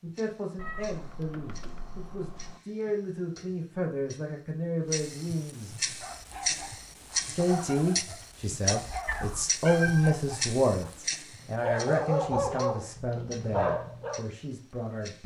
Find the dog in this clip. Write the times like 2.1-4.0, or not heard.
6.0-14.2.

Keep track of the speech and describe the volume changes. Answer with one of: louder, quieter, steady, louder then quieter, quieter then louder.
louder then quieter.